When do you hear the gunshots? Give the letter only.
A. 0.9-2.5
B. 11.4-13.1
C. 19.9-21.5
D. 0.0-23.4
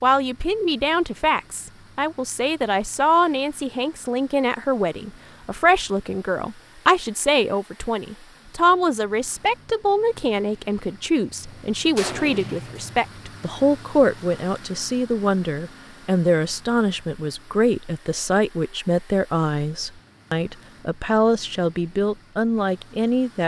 B.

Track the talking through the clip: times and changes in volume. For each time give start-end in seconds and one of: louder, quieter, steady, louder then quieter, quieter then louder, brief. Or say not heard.
0.0-23.4 steady.